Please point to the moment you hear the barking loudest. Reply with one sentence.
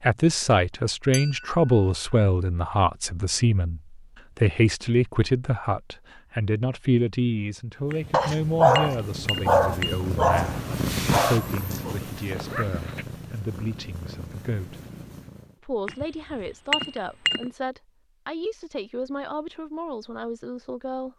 The volume of the barking peaks at 9 seconds.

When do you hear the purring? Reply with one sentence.
The purring can be heard from 7.8 to 15.6 s.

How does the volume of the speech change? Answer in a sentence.
The loudness of the speech goes down.